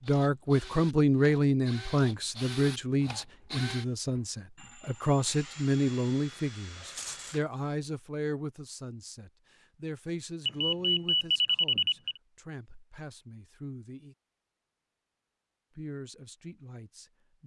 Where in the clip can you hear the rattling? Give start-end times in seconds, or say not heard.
6.8-7.4.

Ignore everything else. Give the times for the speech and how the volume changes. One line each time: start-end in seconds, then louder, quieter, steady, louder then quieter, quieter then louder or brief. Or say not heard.
0.0-14.2 quieter
15.8-17.4 brief.